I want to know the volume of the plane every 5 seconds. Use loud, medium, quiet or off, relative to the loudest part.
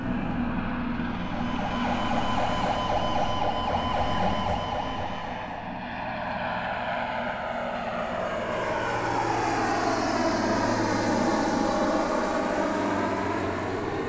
medium, loud, loud.